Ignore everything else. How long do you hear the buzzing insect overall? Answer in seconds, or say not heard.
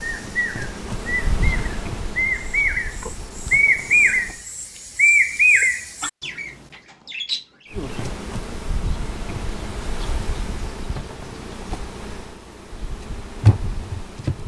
11 s.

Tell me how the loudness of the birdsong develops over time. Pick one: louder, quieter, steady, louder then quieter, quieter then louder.
louder then quieter.